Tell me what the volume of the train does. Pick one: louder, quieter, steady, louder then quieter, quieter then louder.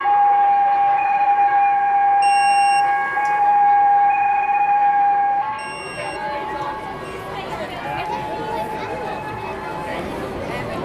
quieter.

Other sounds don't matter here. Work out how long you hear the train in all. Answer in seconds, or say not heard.
11 s.